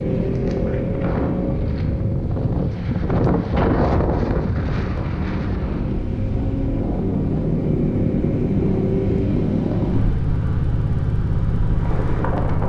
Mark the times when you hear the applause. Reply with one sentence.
The applause can't be heard in this clip.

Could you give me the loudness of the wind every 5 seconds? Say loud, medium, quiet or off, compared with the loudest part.
loud, medium, medium.